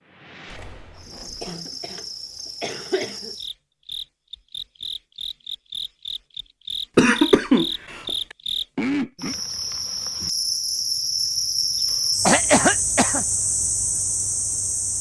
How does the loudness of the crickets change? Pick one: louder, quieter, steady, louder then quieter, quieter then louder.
louder.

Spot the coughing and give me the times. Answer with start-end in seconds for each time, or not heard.
1.4-3.4, 7.0-8.1, 12.2-13.2.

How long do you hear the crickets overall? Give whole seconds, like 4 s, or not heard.
15 s.